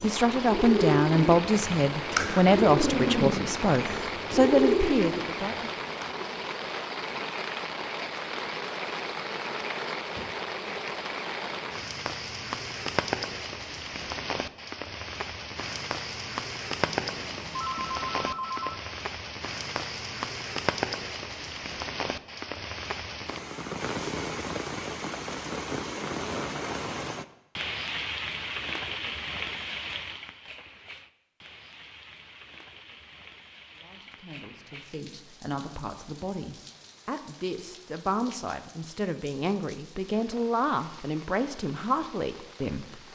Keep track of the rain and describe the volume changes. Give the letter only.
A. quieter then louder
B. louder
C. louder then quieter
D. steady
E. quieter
E.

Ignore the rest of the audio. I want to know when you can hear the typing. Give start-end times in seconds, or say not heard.
not heard.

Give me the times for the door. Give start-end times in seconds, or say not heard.
not heard.